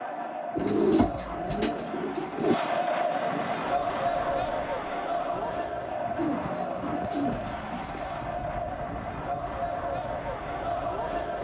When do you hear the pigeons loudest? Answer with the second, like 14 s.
1 s.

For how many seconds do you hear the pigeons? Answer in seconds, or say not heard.
4 s.